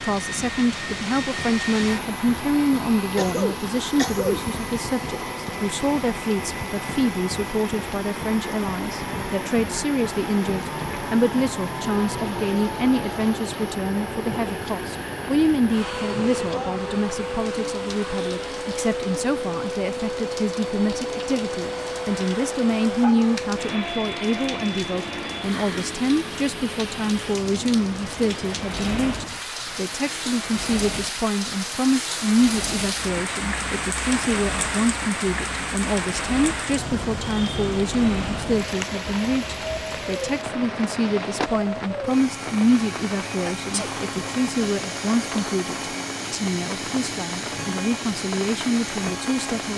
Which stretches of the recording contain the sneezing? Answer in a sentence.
The sneezing can be heard from 3.1 to 4.5 s and from 43.5 to 44.0 s.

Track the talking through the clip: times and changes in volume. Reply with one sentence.
You can hear the talking from 0.0 to 49.7 s, at a steady volume.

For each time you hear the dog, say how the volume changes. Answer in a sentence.
The dog can't be heard in this clip.